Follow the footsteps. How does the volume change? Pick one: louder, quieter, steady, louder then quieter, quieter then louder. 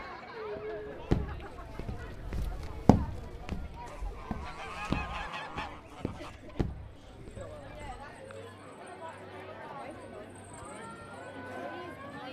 quieter.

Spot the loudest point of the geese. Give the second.
5 s.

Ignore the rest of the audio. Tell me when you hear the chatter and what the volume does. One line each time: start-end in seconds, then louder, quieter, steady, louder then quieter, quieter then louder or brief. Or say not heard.
0.0-12.2 quieter then louder.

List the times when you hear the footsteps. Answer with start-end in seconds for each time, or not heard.
0.6-8.1.